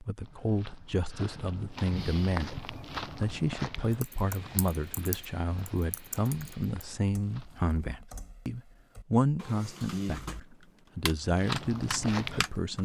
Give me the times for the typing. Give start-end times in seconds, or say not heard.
3.9-10.4, 11.1-12.8.